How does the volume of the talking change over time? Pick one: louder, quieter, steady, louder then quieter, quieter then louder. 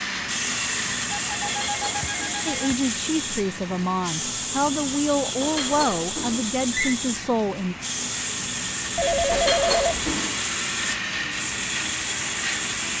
steady.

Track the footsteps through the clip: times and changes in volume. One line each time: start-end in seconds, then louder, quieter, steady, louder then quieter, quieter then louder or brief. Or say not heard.
not heard.